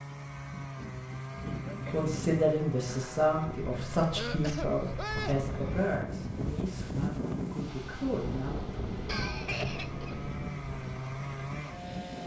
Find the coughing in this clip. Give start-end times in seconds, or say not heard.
1.6-2.1, 4.2-5.5, 9.1-10.2.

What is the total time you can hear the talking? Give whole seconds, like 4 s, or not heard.
7 s.